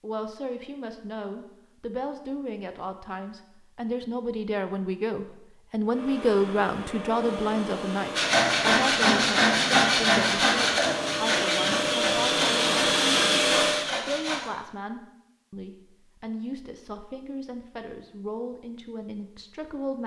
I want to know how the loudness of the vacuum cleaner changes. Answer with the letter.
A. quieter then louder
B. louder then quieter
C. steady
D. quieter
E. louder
E.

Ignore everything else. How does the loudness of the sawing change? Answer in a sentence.
The loudness of the sawing goes down.